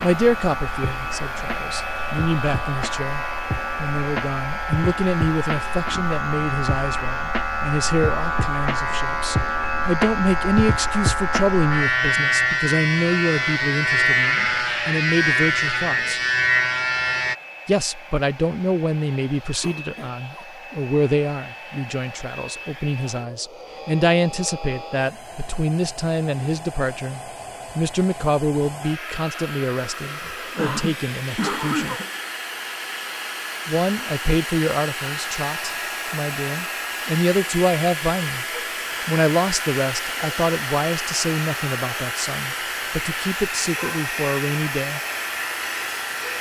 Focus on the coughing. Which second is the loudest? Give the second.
32 s.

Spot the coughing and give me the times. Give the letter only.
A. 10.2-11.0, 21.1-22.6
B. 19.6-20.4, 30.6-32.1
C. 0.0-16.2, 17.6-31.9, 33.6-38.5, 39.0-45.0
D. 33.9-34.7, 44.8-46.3
B.